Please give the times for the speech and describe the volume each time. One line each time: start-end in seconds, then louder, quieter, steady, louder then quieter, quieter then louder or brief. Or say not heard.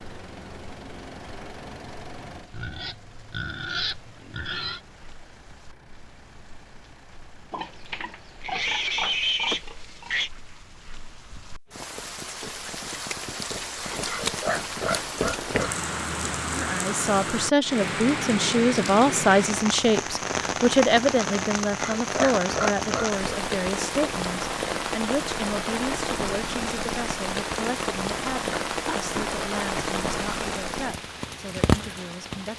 16.4-32.5 quieter.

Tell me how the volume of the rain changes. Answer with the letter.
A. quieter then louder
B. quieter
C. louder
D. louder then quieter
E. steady
C.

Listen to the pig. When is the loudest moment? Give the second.
9 s.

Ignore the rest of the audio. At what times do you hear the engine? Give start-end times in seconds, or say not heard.
0.0-9.0.